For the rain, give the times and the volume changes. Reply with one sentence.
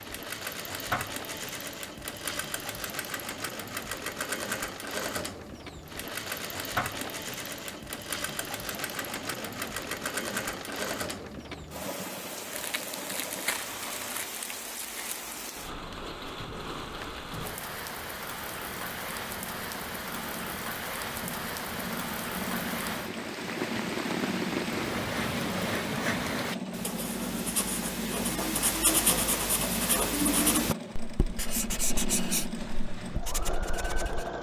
You can hear the rain from 0.0 to 26.6 s, getting louder.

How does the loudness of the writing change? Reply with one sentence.
The loudness of the writing goes up, then down.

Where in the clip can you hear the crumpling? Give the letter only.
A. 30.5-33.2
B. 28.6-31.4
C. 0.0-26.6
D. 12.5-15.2
D.